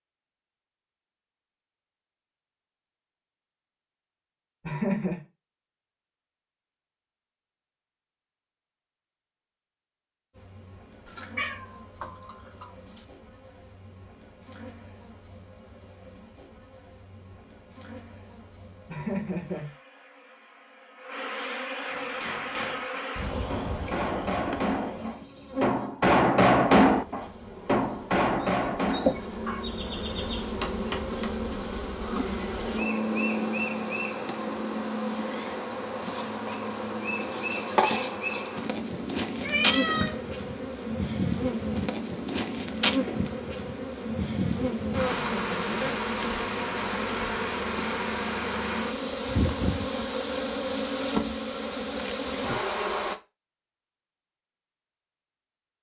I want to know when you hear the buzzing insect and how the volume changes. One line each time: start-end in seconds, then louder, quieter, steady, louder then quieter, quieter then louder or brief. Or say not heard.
10.3-53.1 louder.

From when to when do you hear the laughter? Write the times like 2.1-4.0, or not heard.
4.7-5.2, 18.9-19.8, 45.1-46.0.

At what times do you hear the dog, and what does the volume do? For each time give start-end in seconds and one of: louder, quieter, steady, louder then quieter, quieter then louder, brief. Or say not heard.
not heard.